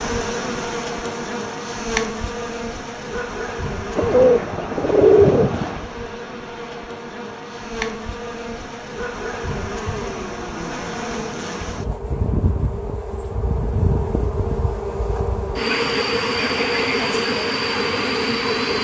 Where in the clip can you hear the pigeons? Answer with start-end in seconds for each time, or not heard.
4.0-5.8.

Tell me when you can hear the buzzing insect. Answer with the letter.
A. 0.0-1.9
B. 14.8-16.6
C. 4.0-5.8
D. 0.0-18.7
D.